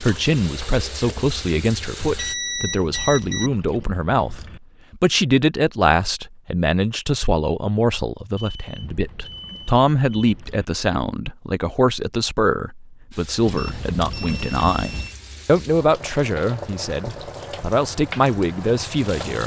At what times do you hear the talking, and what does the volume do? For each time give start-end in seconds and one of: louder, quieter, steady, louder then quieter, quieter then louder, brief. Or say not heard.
0.0-19.4 steady.